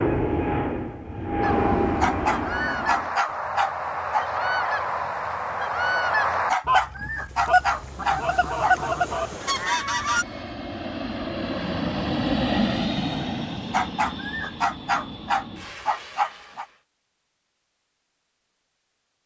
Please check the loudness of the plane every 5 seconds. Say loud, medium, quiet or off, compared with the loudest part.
loud, quiet, loud, quiet.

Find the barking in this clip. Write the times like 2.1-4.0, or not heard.
2.0-4.2, 6.5-8.8, 13.7-16.6.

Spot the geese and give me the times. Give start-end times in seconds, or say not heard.
1.4-10.2.